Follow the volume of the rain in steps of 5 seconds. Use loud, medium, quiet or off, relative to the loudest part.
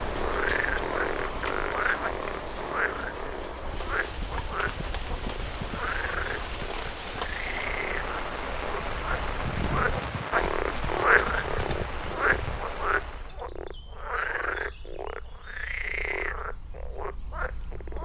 loud, loud, loud, off.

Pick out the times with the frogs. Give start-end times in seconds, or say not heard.
0.0-17.9.